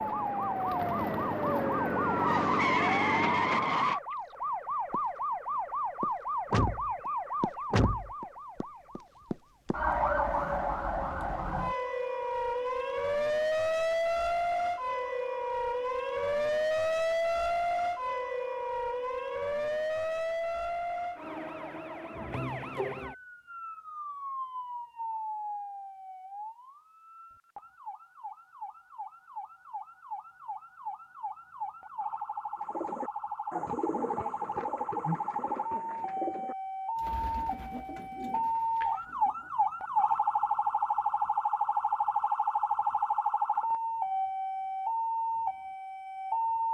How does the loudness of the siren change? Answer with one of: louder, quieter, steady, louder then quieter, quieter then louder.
quieter then louder.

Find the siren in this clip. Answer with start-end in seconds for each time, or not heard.
0.0-46.6.